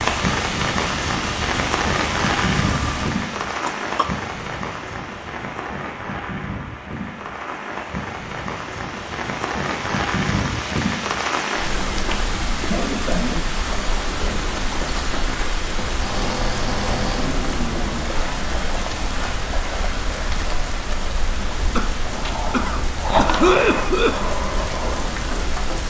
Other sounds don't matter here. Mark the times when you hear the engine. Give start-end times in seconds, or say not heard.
0.0-3.0, 15.9-18.1.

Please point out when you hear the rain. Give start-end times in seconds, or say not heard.
0.0-25.8.